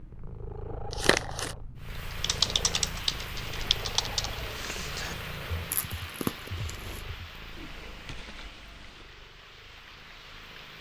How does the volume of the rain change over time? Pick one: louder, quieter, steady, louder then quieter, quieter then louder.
quieter.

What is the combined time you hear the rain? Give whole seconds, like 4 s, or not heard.
9 s.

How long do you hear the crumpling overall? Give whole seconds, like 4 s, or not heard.
2 s.